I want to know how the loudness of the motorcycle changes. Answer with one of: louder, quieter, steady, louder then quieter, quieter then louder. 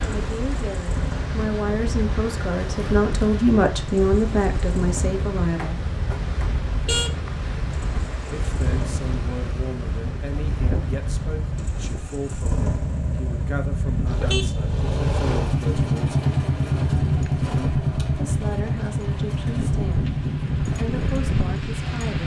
louder.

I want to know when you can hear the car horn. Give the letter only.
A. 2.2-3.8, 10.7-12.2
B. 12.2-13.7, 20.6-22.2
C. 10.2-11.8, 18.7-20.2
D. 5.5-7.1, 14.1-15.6
D.